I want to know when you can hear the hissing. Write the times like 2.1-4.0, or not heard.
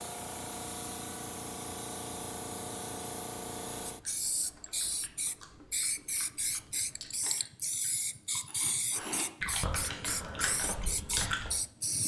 0.0-12.0.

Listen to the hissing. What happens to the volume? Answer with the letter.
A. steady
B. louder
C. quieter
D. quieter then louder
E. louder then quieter
A.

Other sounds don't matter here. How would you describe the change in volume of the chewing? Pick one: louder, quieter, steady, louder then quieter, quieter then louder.
louder.